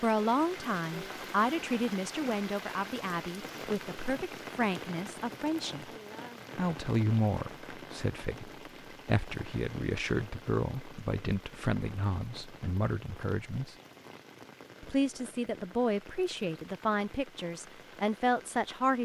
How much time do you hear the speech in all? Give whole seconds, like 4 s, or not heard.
17 s.